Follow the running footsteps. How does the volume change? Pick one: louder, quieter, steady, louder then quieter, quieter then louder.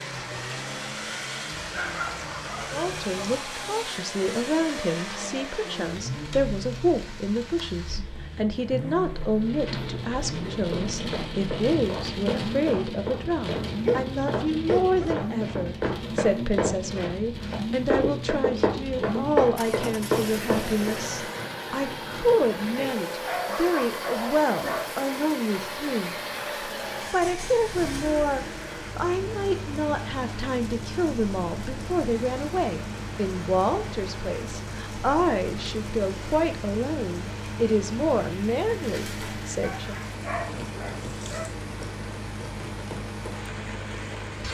louder.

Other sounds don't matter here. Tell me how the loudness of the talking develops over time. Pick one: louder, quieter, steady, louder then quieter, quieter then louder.
steady.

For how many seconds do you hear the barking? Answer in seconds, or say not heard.
7 s.